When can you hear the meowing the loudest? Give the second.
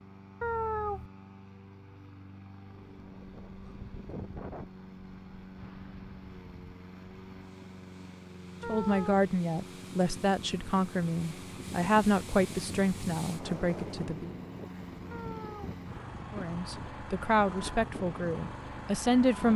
1 s.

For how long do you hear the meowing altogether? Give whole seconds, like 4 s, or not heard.
2 s.